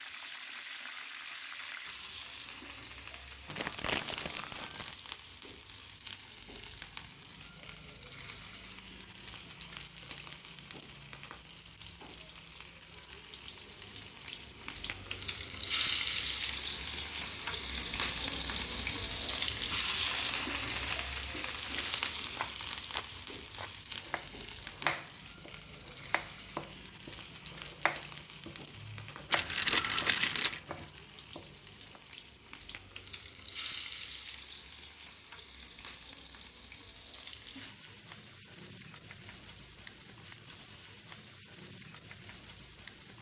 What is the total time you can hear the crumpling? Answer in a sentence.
You can hear the crumpling for 5 seconds altogether.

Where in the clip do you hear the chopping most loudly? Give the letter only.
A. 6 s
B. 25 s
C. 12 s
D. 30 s
B.